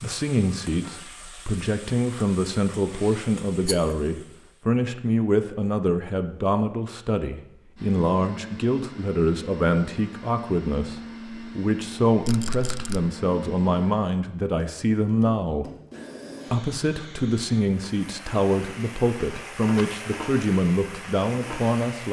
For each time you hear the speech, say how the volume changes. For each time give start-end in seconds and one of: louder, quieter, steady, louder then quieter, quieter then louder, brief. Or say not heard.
0.0-15.7 steady
16.5-22.0 steady.